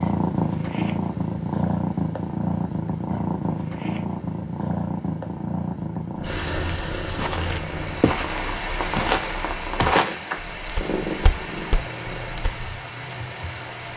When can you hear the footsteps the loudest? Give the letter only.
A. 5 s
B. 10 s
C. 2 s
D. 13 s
B.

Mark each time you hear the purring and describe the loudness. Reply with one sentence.
You can hear the purring from 0.0 to 13.9 s, getting quieter.